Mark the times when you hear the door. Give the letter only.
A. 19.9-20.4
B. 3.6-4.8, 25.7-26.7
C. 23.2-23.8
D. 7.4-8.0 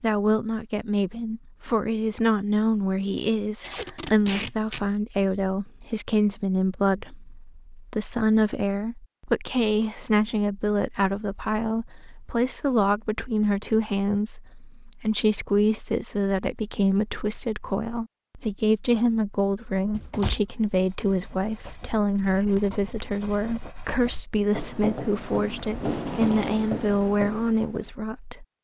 A.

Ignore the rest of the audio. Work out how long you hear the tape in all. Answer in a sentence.
You can hear the tape for 2 seconds altogether.